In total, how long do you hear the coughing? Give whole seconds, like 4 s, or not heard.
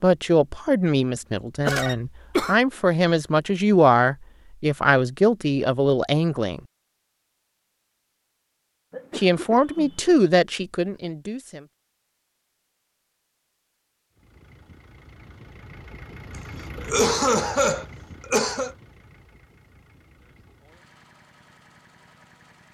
4 s.